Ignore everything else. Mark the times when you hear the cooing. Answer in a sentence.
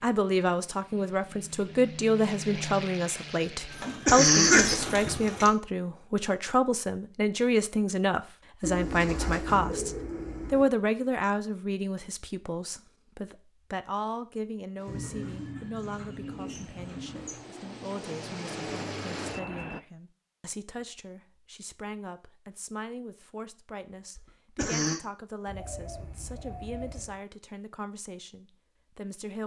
You can hear the cooing from 3.7 to 5.5 s, from 8.6 to 10.7 s, from 14.8 to 17.4 s and from 25.4 to 27.2 s.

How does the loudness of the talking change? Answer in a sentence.
The loudness of the talking goes down.